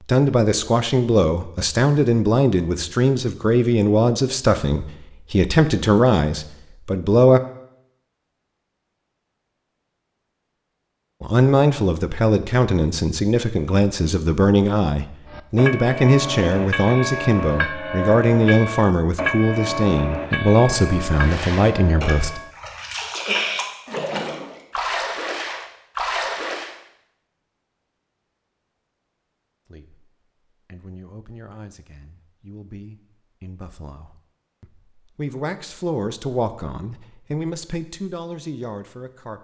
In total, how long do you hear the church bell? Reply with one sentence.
You can hear the church bell for 7 seconds altogether.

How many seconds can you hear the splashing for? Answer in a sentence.
You can hear the splashing for 6 seconds altogether.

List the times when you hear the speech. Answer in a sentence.
The speech can be heard from 0.1 to 7.4 s, from 11.2 to 22.4 s and from 29.6 to 39.3 s.